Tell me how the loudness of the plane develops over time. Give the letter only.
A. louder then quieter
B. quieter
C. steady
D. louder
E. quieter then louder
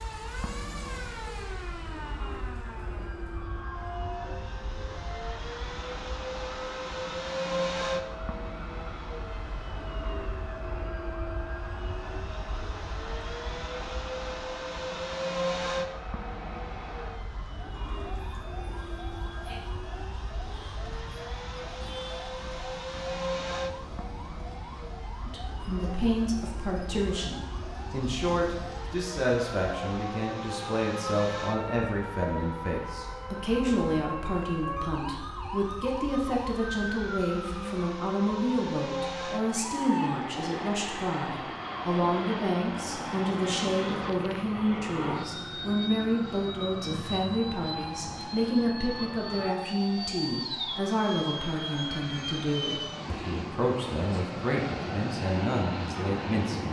C.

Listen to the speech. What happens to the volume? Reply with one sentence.
The loudness of the speech stays about the same.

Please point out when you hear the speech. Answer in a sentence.
You can hear the speech from 25.2 to 56.6 s.